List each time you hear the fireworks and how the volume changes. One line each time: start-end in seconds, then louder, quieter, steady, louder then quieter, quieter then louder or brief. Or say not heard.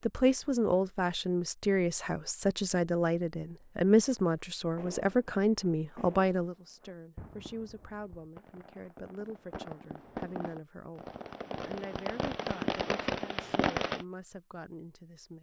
4.8-14.1 louder.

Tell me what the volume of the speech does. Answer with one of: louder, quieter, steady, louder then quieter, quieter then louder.
quieter.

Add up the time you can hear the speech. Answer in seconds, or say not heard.
15 s.